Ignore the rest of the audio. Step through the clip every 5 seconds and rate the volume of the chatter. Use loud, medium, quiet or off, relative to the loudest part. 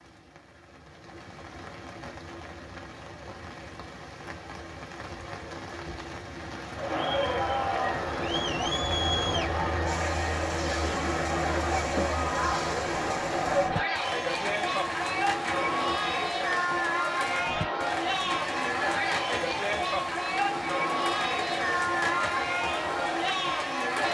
off, loud, loud, loud, loud.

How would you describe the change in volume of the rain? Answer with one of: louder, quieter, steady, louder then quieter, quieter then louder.
louder.